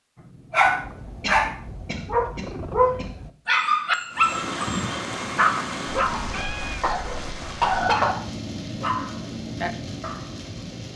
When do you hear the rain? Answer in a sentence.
You can hear the rain from 4.1 to 10.9 s.